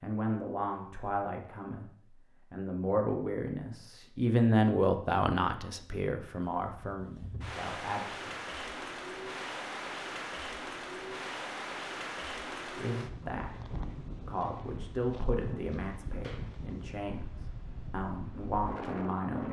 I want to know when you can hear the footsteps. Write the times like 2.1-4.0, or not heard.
not heard.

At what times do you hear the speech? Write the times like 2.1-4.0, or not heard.
0.0-8.3, 12.8-19.4.